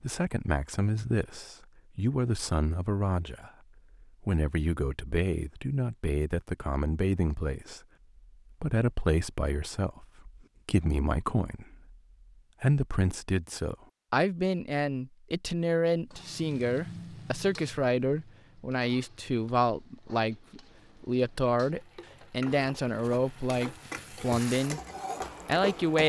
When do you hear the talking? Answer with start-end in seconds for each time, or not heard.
0.0-7.8, 8.5-11.9, 12.6-24.8, 25.4-26.0.